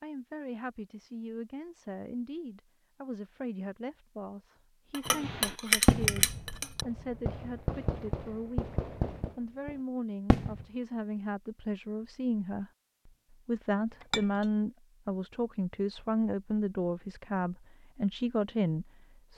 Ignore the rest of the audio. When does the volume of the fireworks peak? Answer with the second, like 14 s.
6 s.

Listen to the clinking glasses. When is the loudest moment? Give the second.
6 s.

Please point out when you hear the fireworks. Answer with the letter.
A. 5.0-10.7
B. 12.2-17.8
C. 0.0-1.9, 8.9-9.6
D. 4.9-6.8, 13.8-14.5
A.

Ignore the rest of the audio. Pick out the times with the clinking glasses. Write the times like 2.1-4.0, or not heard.
4.9-6.8, 13.8-14.5.